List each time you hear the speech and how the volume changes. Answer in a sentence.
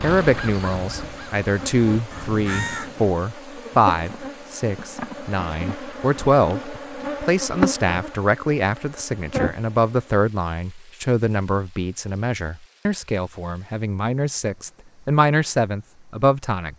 You can hear the speech from 0.0 to 16.7 s, at a steady volume.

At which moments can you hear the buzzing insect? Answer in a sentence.
You can hear the buzzing insect from 0.0 to 10.2 s.